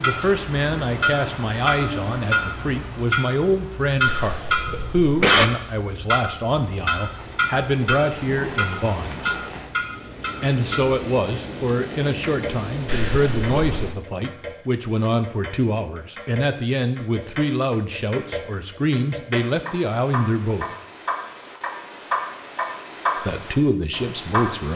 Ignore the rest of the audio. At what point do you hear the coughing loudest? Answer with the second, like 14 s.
5 s.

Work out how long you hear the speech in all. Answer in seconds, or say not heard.
21 s.